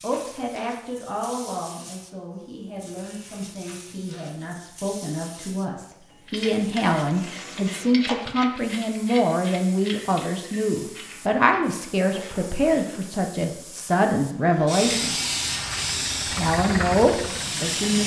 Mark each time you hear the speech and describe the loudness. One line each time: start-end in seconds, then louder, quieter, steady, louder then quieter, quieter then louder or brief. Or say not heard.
0.0-15.2 louder
16.2-18.0 brief.